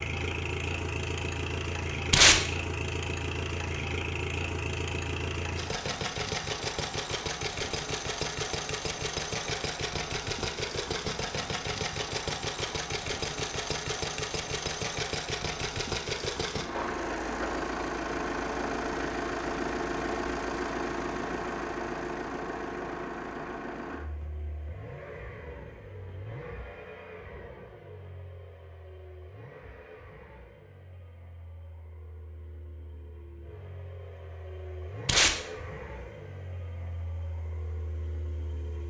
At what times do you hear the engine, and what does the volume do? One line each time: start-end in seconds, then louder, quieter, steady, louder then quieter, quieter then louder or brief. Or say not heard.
0.0-38.8 quieter.